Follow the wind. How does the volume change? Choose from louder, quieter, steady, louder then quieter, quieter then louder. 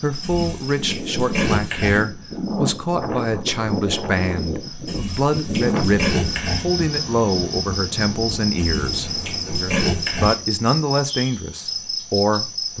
quieter.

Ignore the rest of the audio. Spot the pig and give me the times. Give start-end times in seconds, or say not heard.
0.2-2.0, 4.8-6.7, 8.6-10.3.